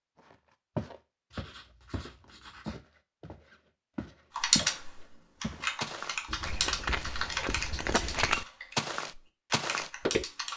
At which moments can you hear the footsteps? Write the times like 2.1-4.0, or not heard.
0.3-4.8, 5.4-10.2.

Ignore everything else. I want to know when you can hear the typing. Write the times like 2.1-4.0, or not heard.
4.3-10.5.